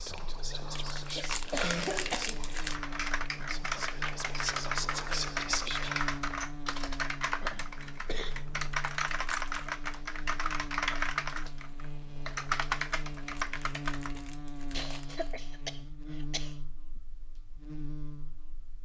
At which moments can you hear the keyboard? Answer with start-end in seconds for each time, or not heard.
2.5-14.1.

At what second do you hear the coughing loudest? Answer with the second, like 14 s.
2 s.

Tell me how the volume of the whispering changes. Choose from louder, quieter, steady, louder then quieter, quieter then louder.
quieter then louder.